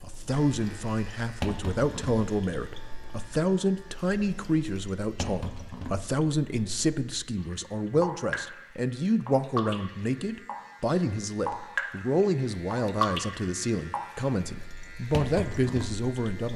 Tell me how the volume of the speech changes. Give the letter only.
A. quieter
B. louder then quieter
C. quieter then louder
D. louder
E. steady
E.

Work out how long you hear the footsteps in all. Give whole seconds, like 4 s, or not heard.
not heard.